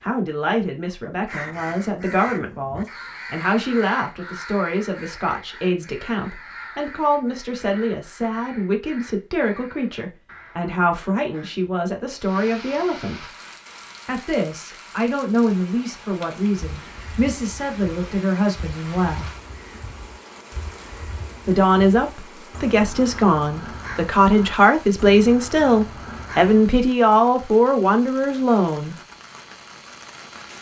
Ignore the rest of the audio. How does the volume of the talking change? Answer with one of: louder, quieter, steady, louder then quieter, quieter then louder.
louder.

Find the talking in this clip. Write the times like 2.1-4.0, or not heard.
0.0-13.3, 14.1-19.3, 21.4-28.9.